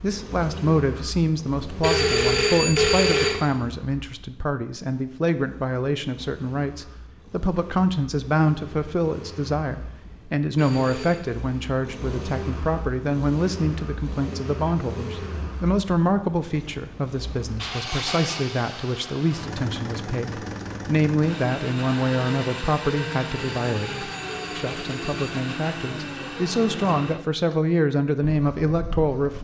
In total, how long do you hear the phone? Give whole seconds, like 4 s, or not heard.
4 s.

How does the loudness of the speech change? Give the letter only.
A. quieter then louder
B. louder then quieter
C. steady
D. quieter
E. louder
C.